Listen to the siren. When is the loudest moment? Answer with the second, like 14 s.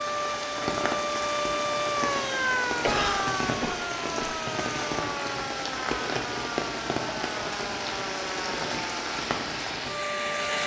2 s.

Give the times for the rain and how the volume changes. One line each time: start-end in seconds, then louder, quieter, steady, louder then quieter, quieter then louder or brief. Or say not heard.
0.0-10.6 steady.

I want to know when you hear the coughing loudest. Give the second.
3 s.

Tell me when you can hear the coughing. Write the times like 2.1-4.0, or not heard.
2.8-4.4.